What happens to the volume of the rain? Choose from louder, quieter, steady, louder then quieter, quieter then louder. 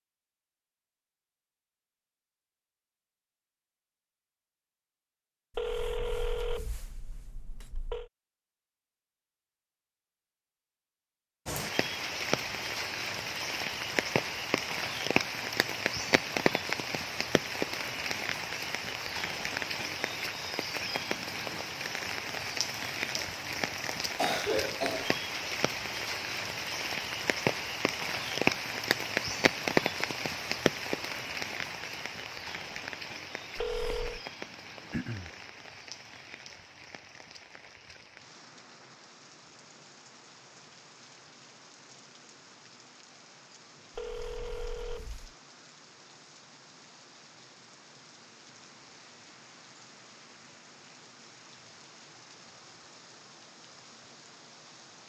quieter.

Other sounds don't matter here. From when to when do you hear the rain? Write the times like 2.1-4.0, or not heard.
11.4-55.0.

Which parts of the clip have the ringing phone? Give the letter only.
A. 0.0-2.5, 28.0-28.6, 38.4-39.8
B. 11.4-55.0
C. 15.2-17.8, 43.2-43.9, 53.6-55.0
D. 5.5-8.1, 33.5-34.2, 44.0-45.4
D.